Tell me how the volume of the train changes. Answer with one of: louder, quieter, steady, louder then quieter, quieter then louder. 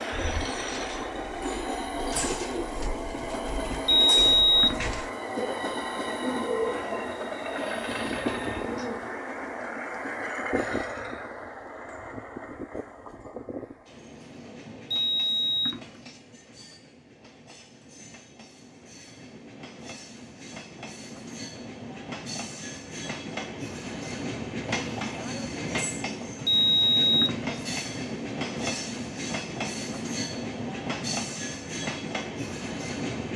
quieter then louder.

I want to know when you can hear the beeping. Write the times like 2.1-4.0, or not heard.
3.9-5.0, 14.9-16.0, 26.4-27.6.